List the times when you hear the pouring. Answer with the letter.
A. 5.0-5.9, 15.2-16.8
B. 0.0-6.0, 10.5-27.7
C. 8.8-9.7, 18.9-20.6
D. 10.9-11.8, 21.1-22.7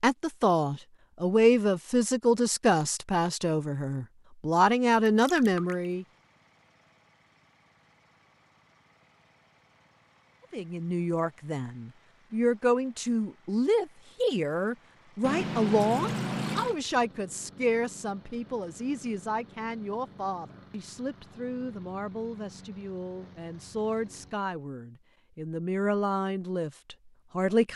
A.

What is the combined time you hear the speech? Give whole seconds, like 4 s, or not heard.
23 s.